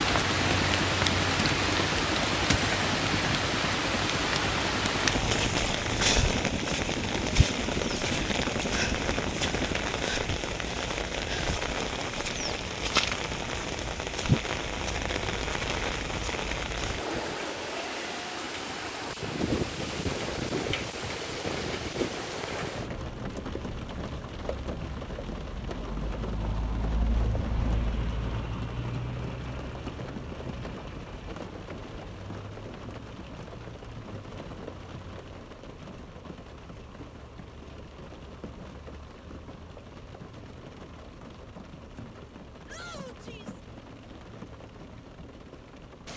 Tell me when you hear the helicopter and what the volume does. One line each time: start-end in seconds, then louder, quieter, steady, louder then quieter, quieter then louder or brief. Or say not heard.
0.0-9.8 steady.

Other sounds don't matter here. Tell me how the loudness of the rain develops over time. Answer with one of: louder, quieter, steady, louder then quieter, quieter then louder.
quieter.